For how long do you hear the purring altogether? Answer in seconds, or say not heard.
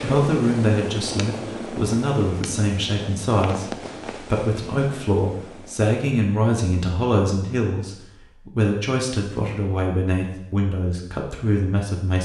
6 s.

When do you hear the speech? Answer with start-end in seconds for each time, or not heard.
0.0-12.2.